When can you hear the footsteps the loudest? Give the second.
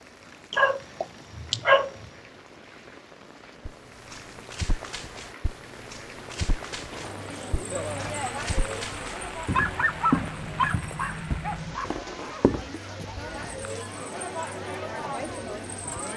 10 s.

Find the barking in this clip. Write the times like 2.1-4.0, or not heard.
0.5-1.9, 9.4-12.0.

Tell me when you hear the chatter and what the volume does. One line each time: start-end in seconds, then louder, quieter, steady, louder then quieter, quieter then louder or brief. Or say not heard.
6.9-16.1 quieter then louder.